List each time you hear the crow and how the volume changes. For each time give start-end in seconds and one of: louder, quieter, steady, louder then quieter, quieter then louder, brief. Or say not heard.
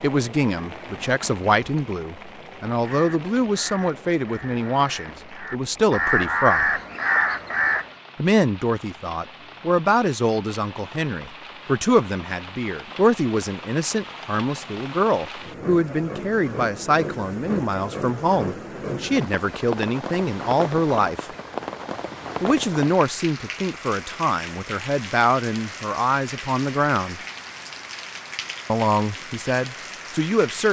2.8-7.9 louder.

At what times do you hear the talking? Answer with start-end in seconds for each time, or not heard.
0.0-6.8, 8.2-21.3, 22.4-27.2, 28.6-30.6.